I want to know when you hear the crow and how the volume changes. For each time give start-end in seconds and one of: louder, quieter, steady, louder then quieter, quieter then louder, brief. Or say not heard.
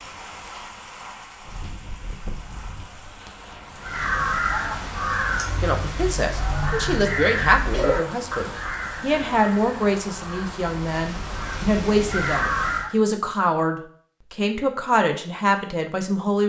3.8-12.9 quieter then louder.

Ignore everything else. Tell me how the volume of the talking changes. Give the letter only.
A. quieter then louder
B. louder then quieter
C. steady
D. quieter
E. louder
C.